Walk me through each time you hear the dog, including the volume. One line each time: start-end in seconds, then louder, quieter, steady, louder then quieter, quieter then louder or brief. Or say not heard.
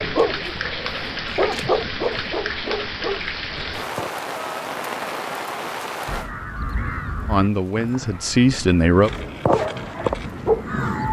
0.0-4.1 louder then quieter
9.1-10.8 brief.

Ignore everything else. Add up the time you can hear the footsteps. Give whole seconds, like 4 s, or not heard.
not heard.